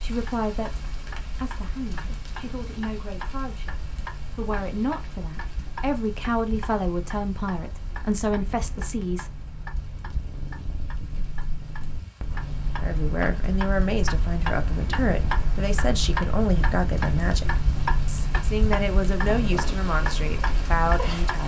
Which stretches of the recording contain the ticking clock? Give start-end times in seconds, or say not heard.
0.0-21.4.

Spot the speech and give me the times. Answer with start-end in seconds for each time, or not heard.
0.0-9.3, 12.8-21.4.